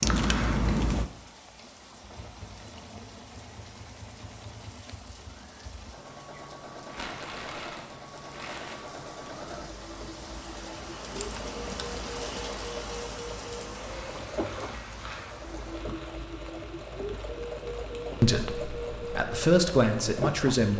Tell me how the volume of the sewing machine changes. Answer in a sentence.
The loudness of the sewing machine goes up.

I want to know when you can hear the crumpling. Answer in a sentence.
You can hear the crumpling from 6.8 to 8.8 s and from 13.7 to 15.3 s.